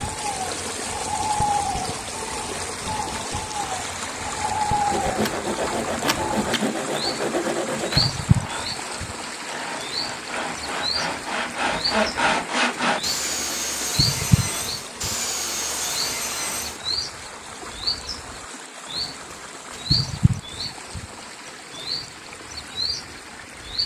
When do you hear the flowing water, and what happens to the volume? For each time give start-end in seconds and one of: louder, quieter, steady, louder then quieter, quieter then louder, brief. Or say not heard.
0.0-23.8 quieter.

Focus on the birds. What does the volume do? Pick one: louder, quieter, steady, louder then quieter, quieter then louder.
steady.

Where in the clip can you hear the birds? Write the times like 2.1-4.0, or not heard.
0.0-23.8.